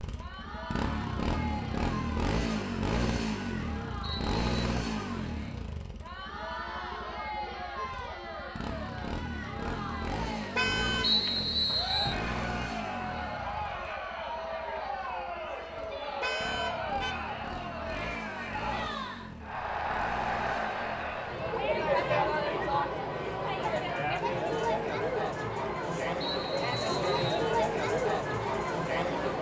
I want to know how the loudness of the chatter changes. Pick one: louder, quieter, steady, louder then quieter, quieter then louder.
louder.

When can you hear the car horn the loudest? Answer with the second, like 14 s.
11 s.